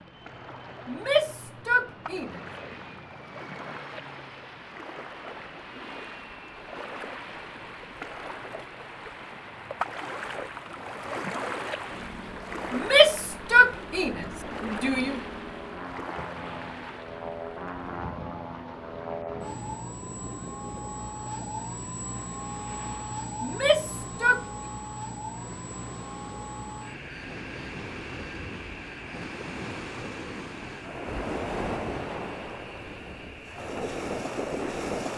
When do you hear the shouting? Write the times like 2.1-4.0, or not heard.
0.8-2.4, 12.7-15.2, 23.4-24.4.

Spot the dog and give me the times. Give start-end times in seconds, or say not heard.
not heard.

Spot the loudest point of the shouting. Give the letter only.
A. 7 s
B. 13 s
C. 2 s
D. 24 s
B.